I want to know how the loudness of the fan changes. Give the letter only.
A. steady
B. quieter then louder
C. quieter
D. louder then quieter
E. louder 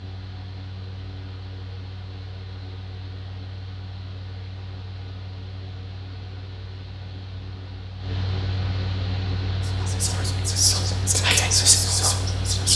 E.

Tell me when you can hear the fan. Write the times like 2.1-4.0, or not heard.
0.0-12.7.